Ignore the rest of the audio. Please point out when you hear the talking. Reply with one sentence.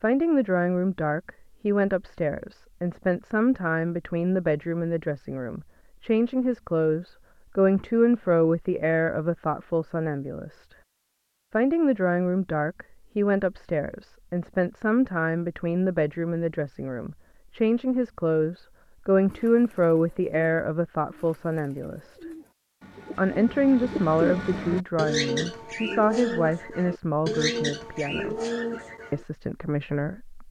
The talking can be heard from 0.0 to 10.8 s, from 11.5 to 22.2 s, from 23.1 to 28.4 s and from 29.1 to 30.4 s.